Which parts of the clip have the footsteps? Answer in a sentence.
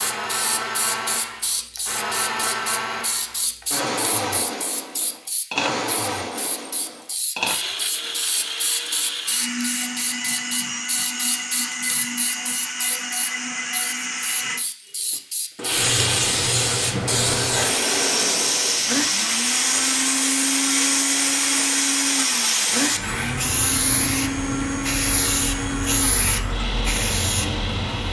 The footsteps can't be heard in this clip.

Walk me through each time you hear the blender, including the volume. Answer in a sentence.
The blender can be heard from 0.0 to 28.0 s, at a steady volume.